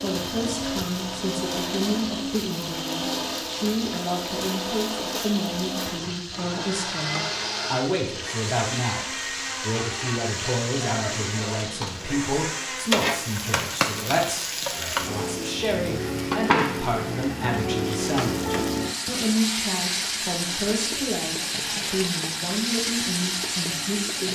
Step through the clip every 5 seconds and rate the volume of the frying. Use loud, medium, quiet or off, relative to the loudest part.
medium, medium, loud, loud, loud.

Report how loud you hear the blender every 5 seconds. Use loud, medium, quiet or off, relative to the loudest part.
loud, loud, loud, medium, medium.